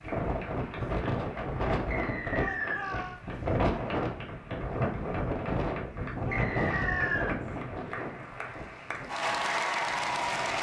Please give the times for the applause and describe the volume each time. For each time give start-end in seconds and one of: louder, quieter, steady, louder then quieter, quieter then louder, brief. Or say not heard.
0.0-10.5 louder.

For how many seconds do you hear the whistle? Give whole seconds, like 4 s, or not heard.
2 s.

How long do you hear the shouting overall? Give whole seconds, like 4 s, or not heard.
2 s.